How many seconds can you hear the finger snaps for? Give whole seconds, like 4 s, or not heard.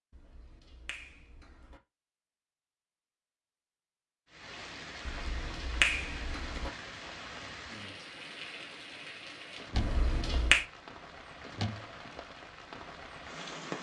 4 s.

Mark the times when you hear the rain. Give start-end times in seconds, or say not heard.
4.3-13.7.